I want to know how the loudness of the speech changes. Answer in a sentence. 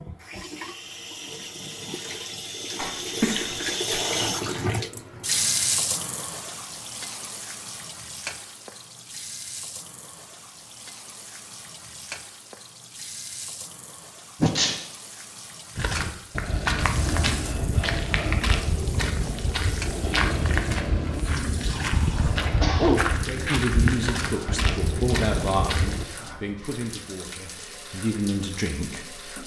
The loudness of the speech goes down, then up.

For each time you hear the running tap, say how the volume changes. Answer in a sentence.
You can hear the running tap from 0.0 to 29.4 s, getting quieter.